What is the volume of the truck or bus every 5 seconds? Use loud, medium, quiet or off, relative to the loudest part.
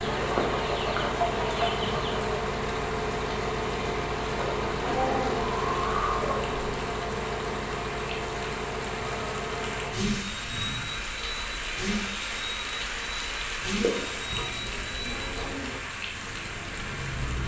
loud, loud, medium, medium.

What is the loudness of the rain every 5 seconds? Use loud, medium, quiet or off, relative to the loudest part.
medium, medium, loud, loud.